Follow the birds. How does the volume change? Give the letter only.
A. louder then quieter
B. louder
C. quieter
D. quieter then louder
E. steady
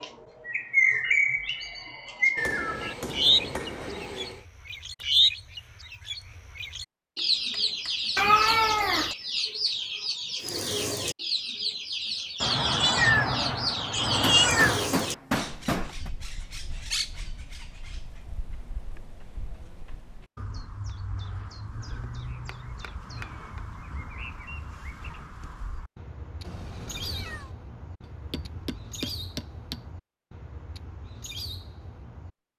C.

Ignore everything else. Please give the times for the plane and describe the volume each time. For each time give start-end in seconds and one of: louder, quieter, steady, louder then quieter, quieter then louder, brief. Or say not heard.
not heard.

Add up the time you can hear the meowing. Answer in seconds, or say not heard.
5 s.